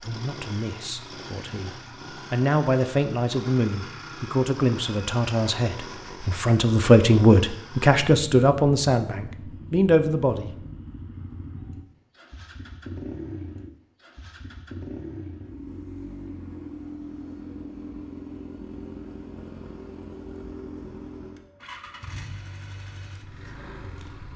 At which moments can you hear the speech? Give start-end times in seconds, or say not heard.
0.1-1.7, 2.3-10.6.